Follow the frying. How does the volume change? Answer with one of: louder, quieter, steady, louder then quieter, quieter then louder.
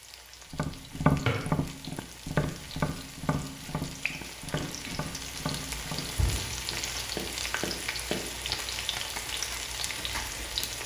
louder.